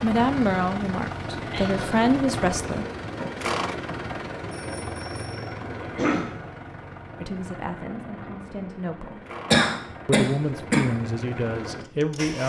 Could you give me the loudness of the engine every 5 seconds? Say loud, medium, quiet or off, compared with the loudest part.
loud, medium, medium.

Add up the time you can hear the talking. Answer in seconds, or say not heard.
7 s.